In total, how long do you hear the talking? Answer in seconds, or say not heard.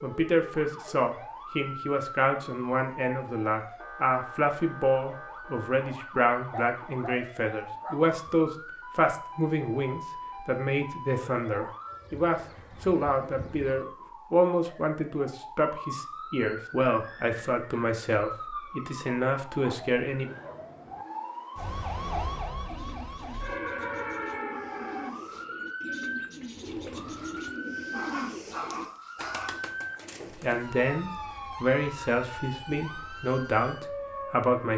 25 s.